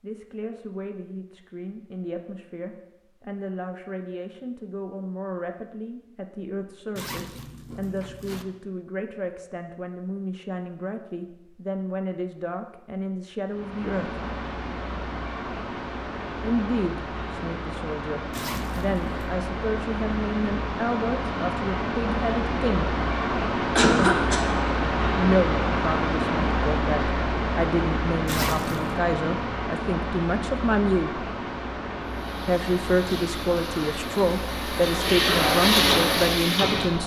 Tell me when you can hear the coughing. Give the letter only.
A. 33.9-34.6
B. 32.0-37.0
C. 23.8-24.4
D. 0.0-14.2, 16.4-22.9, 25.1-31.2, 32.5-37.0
C.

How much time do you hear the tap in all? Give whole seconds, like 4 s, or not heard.
5 s.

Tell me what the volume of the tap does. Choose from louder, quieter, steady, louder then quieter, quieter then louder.
louder.